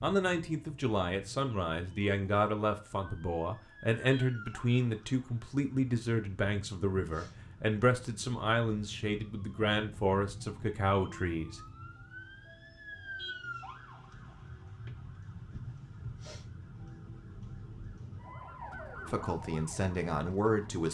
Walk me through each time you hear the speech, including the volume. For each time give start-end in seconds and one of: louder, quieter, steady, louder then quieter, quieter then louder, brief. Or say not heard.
0.0-11.6 steady
19.1-20.8 brief.